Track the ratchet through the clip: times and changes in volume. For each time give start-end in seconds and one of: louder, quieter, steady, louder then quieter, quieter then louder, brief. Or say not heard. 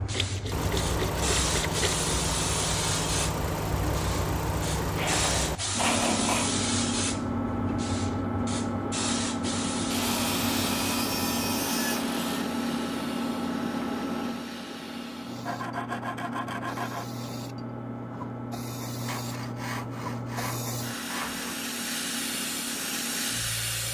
not heard.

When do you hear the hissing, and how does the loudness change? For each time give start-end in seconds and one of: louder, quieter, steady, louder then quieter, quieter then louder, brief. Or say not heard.
0.0-23.8 quieter then louder.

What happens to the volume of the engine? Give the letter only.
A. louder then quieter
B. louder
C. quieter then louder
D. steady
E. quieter
E.